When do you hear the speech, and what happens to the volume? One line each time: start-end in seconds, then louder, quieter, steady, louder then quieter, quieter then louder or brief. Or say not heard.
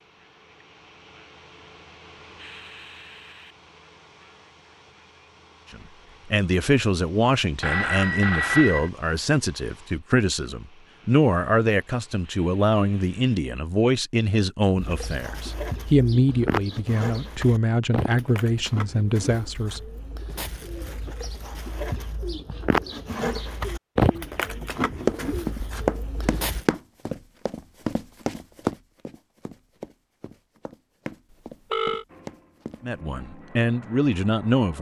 5.7-19.8 steady
32.8-34.7 brief.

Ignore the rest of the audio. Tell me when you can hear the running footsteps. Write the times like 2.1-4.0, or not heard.
25.1-32.9.